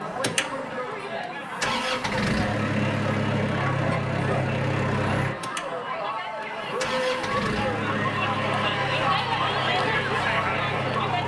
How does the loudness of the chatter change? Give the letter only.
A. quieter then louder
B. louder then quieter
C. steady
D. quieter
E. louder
E.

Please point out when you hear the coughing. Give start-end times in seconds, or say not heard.
not heard.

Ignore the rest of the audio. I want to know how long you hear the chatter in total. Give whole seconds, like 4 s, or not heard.
11 s.